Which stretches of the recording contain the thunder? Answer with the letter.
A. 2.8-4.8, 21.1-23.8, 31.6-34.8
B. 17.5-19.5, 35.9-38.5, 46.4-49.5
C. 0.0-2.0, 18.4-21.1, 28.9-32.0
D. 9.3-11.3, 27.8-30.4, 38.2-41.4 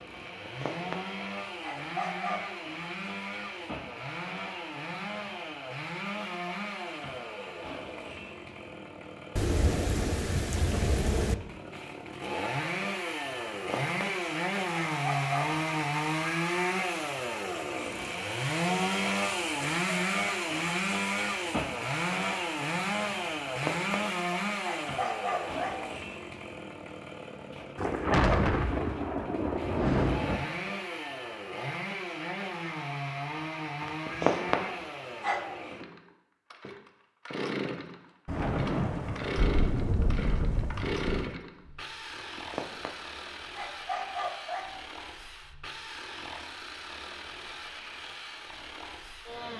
D.